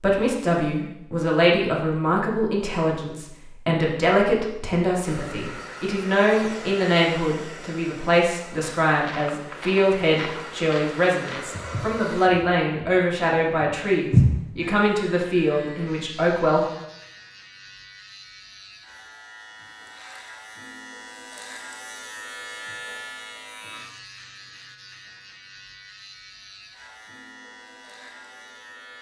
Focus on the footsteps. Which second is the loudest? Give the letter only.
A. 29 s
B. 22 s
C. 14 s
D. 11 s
C.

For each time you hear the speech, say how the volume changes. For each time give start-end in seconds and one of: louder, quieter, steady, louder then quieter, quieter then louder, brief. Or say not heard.
0.0-16.6 steady.